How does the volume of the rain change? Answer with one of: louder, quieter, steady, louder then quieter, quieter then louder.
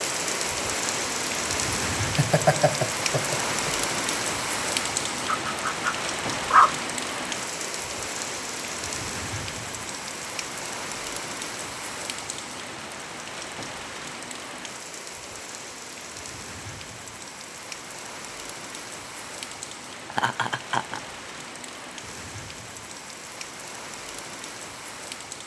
quieter.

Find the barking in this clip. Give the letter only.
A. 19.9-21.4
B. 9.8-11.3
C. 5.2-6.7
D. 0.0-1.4
C.